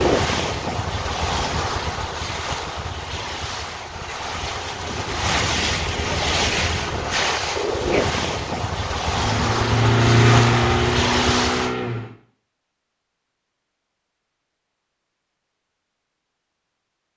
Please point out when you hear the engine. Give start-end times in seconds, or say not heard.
9.1-12.2.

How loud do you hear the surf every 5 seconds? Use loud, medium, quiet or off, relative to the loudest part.
loud, loud, loud, off.